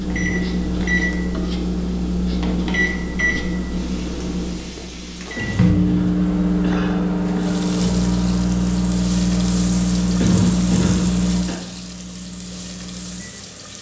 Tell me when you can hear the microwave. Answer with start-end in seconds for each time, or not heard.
0.0-13.7.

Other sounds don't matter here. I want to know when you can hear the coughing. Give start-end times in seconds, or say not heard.
0.1-0.9, 5.3-7.5, 10.2-11.6.